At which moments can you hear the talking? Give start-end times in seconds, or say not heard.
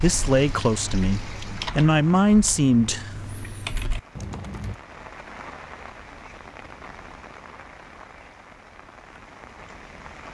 0.0-3.1.